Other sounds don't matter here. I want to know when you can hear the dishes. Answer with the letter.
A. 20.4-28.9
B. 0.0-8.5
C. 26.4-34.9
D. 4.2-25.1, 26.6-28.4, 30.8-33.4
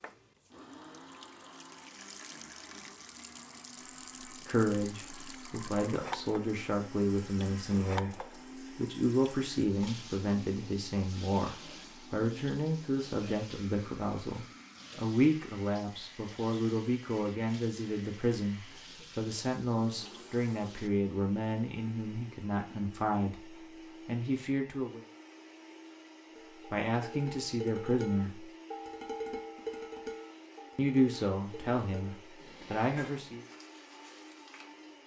C.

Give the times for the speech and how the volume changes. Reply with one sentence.
You can hear the speech from 4.2 to 25.1 s, at a steady volume; briefly from 26.6 to 28.4 s; and briefly from 30.8 to 33.4 s.